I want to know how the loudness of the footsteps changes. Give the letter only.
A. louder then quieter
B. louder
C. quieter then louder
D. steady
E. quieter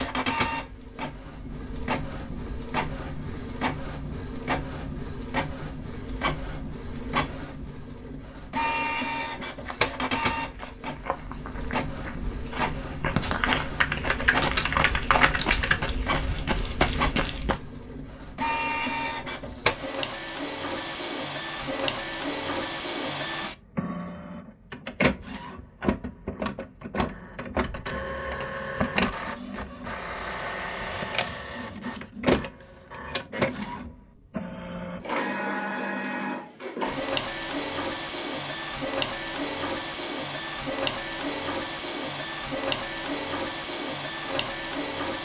B.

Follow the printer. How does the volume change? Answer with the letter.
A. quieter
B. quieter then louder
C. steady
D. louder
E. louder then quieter
C.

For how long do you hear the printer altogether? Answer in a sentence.
You can hear the printer for 45 seconds altogether.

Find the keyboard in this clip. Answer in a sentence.
You can hear the keyboard from 13.2 to 15.9 s.